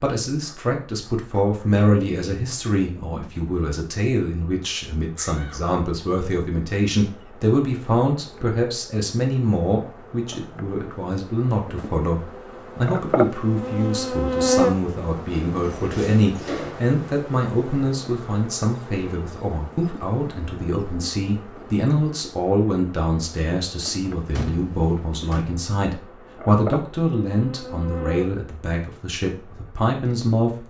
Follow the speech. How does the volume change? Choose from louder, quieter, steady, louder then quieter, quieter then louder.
steady.